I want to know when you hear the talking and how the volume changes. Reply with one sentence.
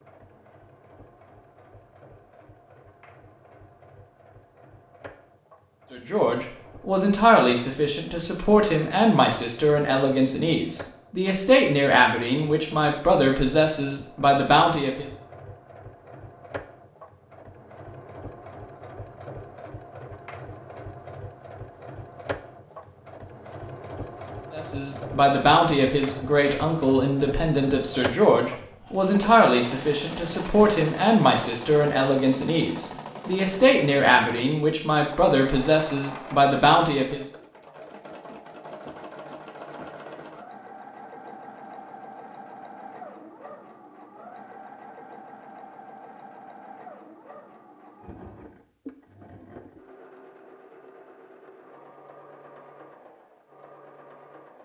The talking can be heard from 5.9 to 15.1 s, at a steady volume; and from 24.5 to 37.2 s, at a steady volume.